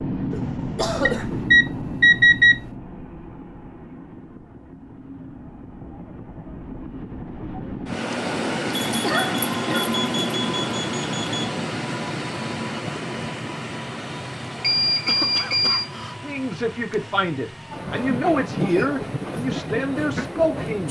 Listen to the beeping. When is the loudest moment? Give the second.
2 s.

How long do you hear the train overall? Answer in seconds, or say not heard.
21 s.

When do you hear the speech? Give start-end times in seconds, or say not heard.
16.2-20.8.